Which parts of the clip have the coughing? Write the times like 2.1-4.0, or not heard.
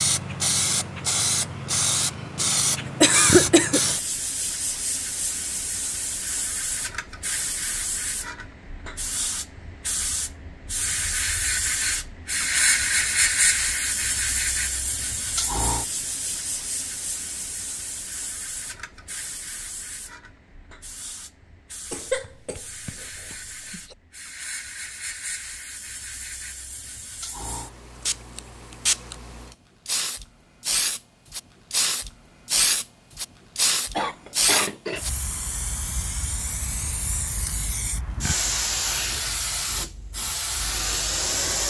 3.0-3.8, 21.9-23.9, 34.0-35.0.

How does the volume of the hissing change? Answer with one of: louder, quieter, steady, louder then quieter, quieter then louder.
quieter then louder.